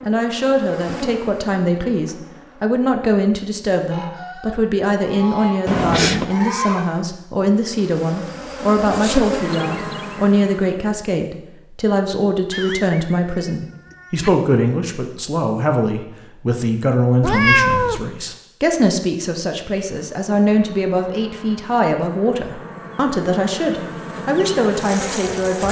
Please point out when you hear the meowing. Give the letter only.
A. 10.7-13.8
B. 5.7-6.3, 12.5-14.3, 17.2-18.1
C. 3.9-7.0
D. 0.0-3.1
B.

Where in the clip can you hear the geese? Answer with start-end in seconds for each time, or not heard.
3.9-7.0.